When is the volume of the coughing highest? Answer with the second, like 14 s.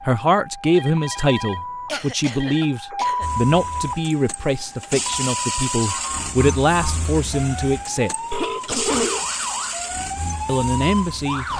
9 s.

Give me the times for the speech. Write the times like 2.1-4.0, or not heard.
0.0-8.1, 10.4-11.4.